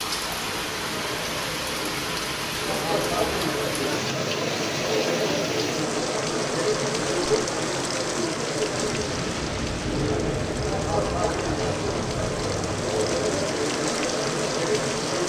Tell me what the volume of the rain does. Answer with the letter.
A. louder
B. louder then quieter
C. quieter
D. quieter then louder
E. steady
E.